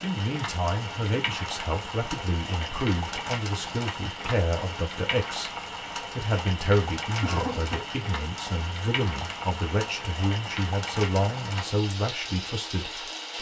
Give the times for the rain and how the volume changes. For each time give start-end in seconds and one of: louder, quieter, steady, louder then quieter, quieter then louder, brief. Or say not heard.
0.0-13.3 steady.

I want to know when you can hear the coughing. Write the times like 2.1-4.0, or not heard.
7.2-7.8.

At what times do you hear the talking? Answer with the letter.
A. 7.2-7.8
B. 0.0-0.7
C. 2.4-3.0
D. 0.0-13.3
D.